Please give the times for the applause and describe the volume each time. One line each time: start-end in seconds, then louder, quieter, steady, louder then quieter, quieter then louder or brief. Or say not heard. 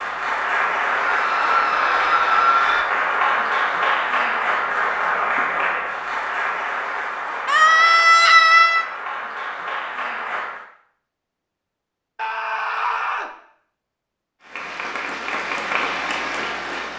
0.0-10.7 quieter
14.4-16.9 brief.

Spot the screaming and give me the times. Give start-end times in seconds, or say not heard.
1.0-2.9, 7.5-8.8, 12.2-13.3.